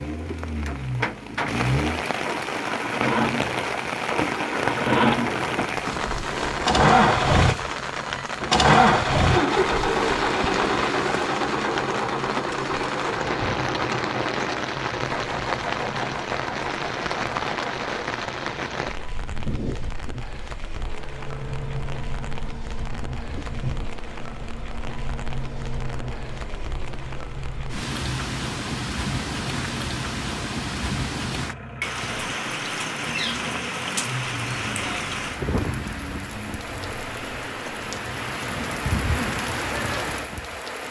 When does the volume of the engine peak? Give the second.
9 s.